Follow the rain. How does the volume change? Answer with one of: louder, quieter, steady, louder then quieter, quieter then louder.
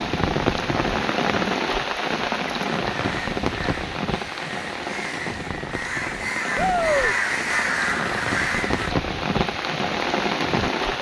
quieter then louder.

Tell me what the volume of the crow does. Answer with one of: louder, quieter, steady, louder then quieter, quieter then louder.
louder.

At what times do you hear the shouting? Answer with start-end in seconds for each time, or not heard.
6.5-7.2.